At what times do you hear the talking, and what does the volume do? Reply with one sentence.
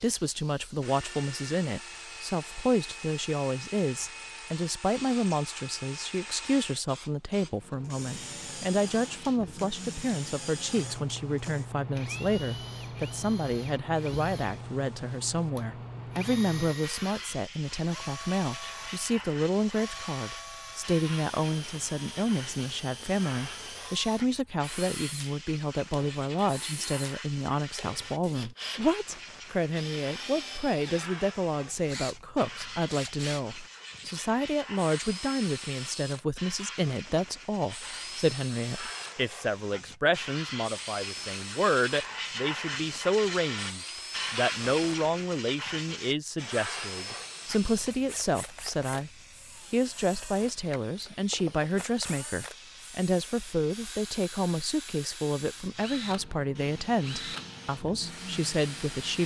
The talking can be heard from 0.0 to 49.1 s, at a steady volume; and from 49.7 to 59.2 s, at a steady volume.